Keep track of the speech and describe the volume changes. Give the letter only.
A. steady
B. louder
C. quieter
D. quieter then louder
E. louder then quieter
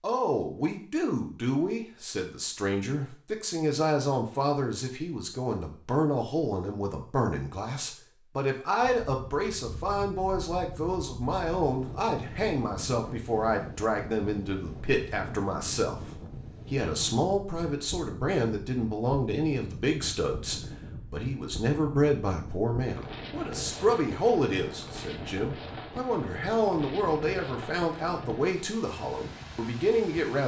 A.